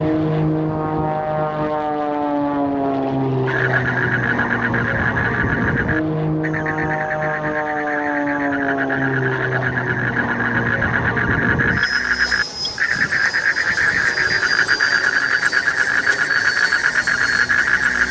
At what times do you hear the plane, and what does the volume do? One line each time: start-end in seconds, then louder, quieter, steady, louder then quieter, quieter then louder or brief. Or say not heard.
0.0-18.0 quieter.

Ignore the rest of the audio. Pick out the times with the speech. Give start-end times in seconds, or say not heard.
not heard.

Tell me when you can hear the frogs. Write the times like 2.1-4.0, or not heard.
3.5-18.0.